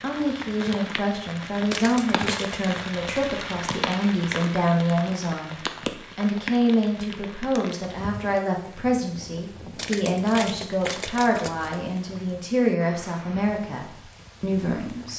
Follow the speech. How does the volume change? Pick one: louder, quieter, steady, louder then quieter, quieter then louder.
steady.